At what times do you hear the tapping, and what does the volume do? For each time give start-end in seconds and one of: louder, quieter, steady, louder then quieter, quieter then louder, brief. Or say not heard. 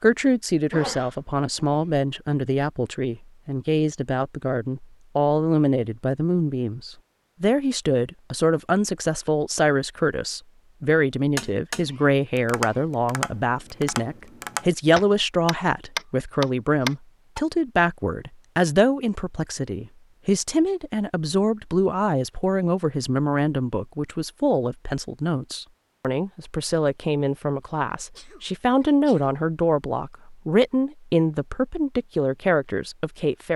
11.3-17.4 louder.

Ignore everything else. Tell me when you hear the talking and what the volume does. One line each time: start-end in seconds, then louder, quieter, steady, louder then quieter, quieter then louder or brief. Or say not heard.
0.0-33.5 steady.